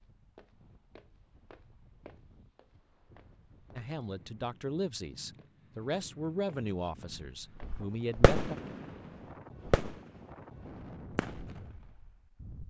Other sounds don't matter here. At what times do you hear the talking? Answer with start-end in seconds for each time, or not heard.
3.8-8.6.